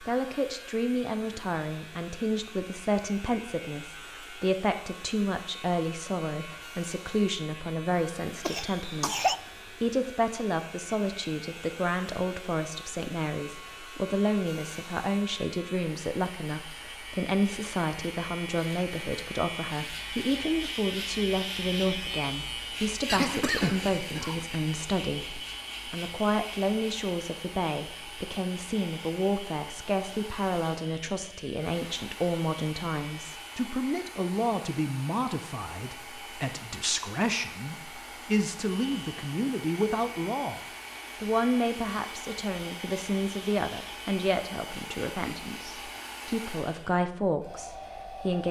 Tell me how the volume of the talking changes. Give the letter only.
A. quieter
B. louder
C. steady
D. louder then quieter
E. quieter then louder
C.